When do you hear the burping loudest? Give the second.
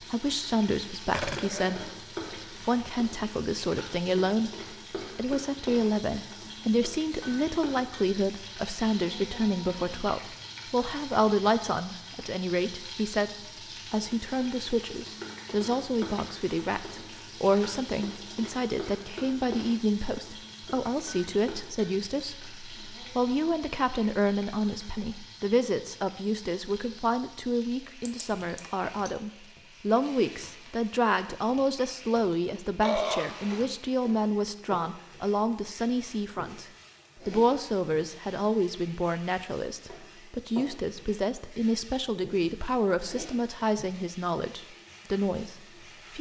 33 s.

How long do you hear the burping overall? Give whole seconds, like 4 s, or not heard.
3 s.